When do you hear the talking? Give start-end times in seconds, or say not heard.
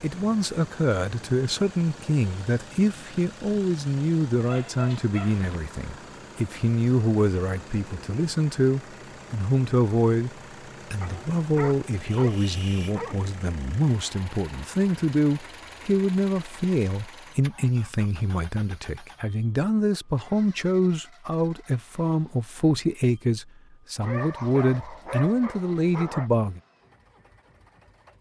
0.0-10.3, 10.9-26.6.